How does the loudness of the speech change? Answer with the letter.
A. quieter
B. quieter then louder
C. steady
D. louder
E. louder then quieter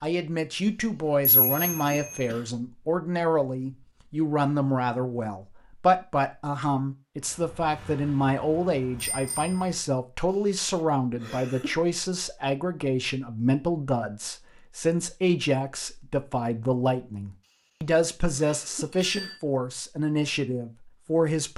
C.